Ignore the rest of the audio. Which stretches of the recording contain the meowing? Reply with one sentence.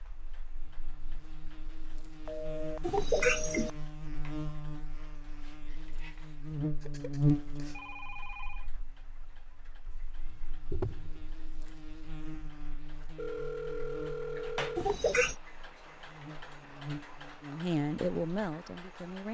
You can hear the meowing from 2.8 to 3.7 s, from 9.8 to 11.3 s and from 14.8 to 15.3 s.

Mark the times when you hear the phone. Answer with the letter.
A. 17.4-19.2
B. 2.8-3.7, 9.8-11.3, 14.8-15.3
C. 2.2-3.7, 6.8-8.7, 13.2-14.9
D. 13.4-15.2
C.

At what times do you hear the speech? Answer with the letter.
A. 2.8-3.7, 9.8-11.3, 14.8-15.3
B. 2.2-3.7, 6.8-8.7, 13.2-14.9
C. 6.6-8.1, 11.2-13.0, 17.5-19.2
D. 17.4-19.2
D.